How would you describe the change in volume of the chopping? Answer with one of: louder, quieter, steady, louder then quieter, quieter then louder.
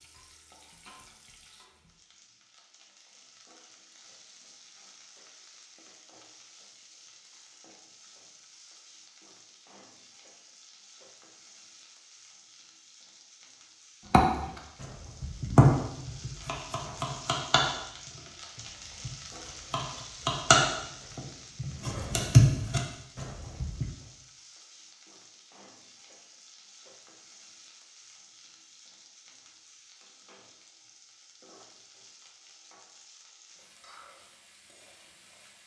quieter then louder.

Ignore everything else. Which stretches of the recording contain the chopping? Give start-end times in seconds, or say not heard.
14.1-23.9.